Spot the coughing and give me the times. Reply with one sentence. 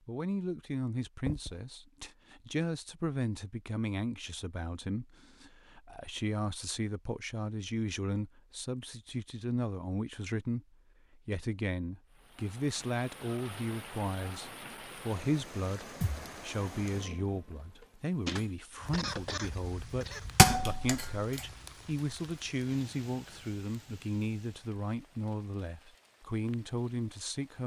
The coughing can be heard from 18.9 to 20.2 s.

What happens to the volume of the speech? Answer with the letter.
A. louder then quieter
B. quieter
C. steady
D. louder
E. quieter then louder
C.